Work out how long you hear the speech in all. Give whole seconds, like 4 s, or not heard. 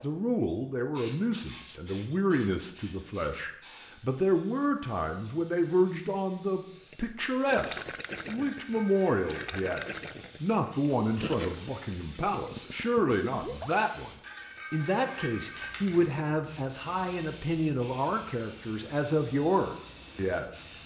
20 s.